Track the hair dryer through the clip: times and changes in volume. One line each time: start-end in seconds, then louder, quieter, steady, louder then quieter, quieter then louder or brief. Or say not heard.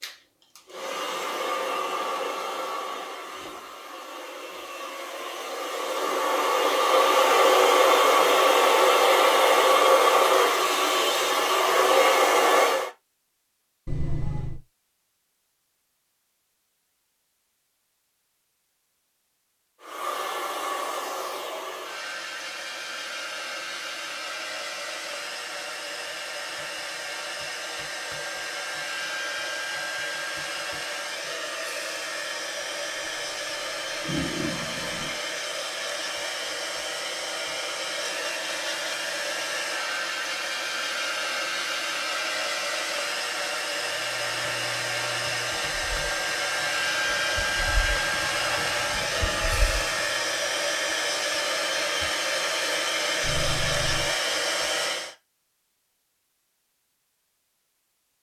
0.0-12.9 quieter then louder
19.8-55.1 louder.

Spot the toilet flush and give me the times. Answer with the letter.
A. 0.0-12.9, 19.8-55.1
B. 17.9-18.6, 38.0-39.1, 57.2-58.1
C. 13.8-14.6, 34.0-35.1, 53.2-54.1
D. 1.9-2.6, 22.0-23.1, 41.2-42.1
C.